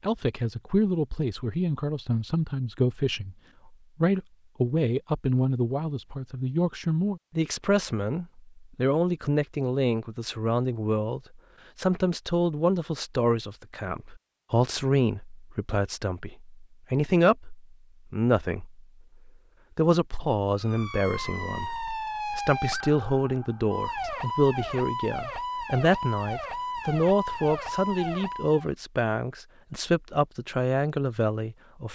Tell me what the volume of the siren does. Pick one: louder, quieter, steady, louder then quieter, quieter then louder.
steady.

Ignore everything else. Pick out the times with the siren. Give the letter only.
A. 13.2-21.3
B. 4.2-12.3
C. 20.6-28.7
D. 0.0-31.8
C.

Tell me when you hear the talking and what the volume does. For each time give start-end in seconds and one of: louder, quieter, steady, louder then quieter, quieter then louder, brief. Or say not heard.
0.0-31.8 steady.